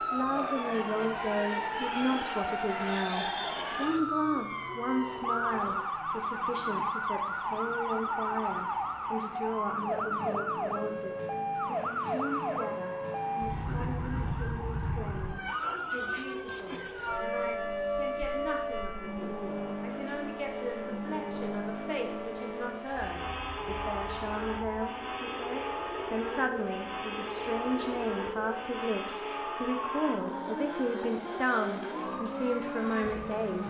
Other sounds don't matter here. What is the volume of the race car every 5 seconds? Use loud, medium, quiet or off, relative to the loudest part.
medium, medium, medium, medium, loud, loud, loud.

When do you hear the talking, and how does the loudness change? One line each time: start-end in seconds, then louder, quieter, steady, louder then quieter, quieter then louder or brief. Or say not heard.
0.1-33.6 quieter then louder.